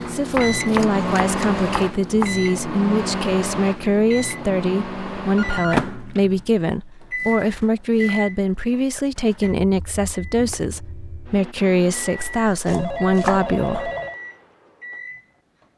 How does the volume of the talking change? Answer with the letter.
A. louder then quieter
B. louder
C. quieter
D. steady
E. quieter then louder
D.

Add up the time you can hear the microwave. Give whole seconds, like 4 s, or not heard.
16 s.